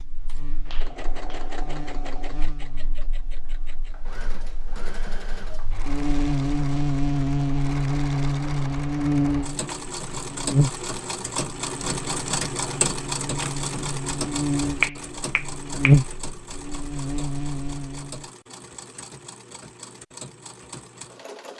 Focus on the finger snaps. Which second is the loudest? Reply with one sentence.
The volume of the finger snaps peaks at 15 seconds.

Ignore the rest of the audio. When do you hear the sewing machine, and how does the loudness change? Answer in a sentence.
The sewing machine can be heard from 0.0 to 21.5 s, getting louder then quieter.